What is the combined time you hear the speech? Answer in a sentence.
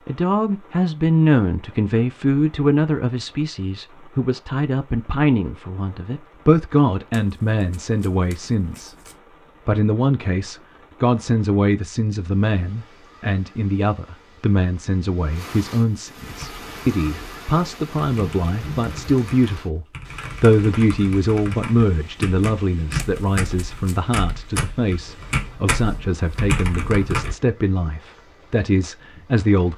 You can hear the speech for 29 seconds altogether.